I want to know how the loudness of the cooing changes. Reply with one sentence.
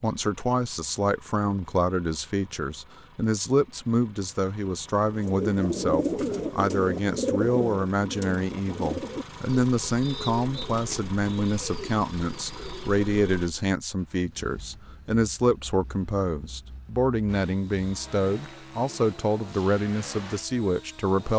The volume of the cooing goes down.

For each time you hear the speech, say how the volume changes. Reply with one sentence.
You can hear the speech from 0.0 to 21.3 s, at a steady volume.